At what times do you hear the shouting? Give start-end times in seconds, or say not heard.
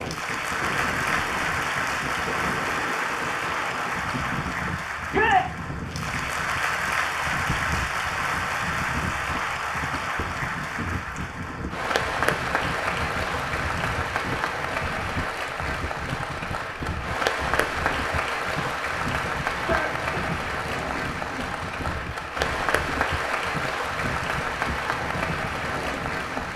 5.1-5.5, 19.5-20.1.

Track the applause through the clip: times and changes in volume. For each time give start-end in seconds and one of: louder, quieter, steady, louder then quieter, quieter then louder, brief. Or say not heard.
0.0-26.5 steady.